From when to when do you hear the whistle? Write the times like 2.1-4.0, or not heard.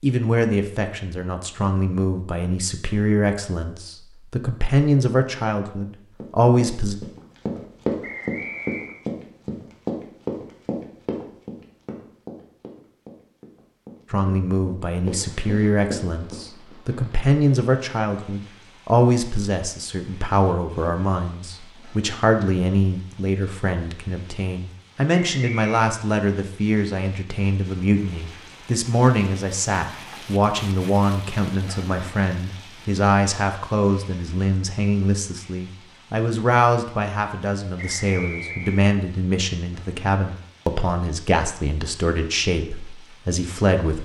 8.0-9.0, 25.1-25.8, 37.8-38.8.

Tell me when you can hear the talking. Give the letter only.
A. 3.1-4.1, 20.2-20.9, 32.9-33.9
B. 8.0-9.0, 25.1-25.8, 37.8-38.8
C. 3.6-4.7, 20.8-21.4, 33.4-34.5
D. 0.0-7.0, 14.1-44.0
D.